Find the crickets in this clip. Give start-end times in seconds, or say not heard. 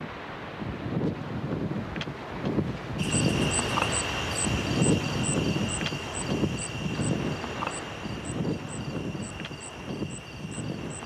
3.0-11.0.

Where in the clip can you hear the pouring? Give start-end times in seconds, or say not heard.
not heard.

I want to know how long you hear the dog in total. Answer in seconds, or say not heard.
not heard.